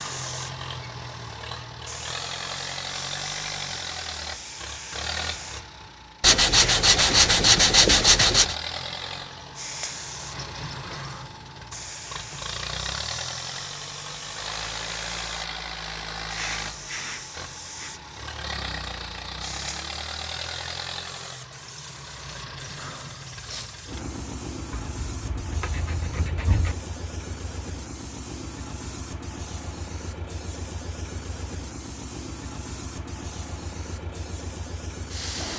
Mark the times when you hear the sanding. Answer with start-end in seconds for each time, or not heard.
6.2-8.6, 24.7-26.8.